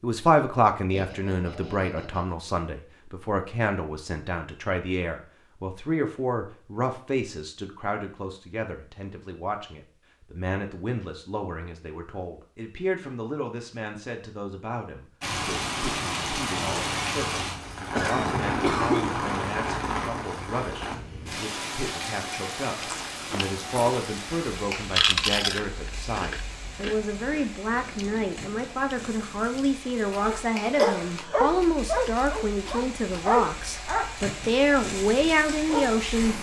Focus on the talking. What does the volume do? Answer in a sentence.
The volume of the talking goes down, then up.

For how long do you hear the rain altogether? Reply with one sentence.
You can hear the rain for 21 seconds altogether.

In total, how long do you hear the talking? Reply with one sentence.
You can hear the talking for 36 seconds altogether.